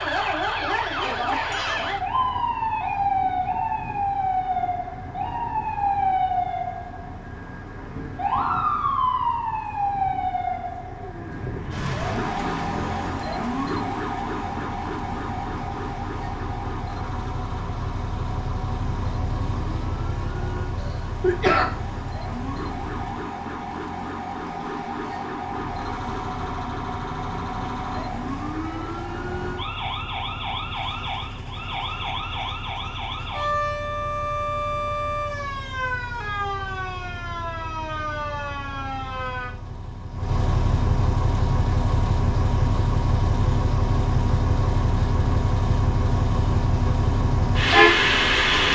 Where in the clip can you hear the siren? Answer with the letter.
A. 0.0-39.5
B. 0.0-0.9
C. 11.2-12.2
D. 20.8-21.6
A.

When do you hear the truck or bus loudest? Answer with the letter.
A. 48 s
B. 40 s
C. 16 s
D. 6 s
A.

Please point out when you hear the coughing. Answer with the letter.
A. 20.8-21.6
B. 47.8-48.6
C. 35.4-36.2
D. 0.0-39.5
A.